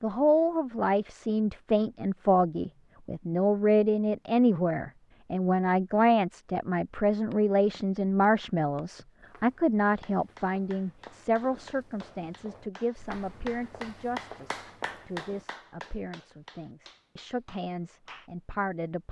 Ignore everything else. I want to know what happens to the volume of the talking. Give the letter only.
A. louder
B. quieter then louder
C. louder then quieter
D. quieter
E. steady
D.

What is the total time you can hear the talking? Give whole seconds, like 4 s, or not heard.
19 s.